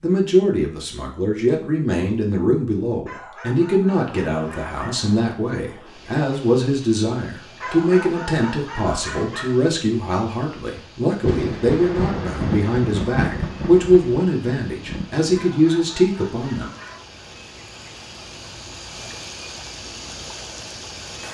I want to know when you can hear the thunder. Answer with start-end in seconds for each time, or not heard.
11.2-15.3.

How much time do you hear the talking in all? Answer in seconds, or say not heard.
17 s.